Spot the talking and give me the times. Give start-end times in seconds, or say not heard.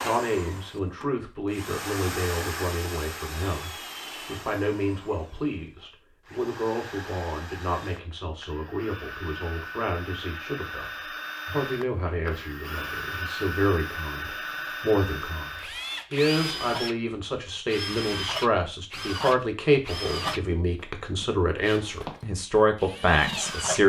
0.0-23.8.